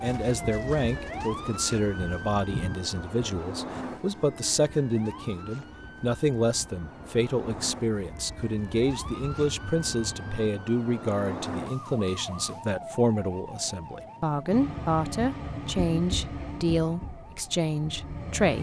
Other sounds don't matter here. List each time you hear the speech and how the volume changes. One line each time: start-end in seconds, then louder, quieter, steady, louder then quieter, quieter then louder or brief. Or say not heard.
0.0-18.5 steady.